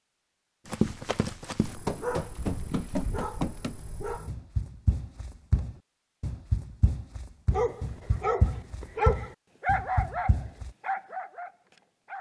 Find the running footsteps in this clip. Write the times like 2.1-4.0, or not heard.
0.7-10.7.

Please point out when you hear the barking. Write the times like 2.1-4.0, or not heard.
1.6-4.3, 7.5-12.1.